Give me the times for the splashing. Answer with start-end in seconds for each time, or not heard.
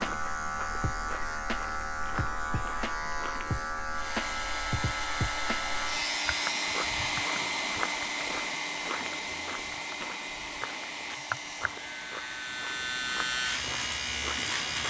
not heard.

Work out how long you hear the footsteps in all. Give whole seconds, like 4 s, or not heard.
12 s.